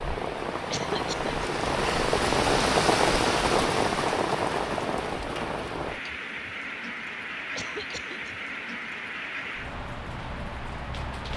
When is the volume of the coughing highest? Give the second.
1 s.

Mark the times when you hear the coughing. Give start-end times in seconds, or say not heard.
0.7-1.5, 7.5-8.3.